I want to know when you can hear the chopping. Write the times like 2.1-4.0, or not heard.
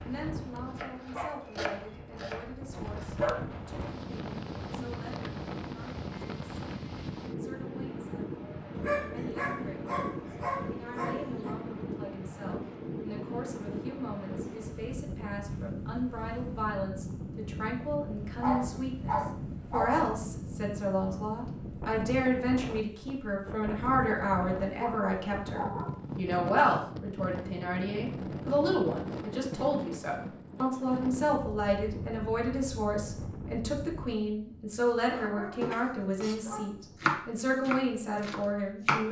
0.0-3.2, 35.1-39.0.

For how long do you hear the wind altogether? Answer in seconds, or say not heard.
39 s.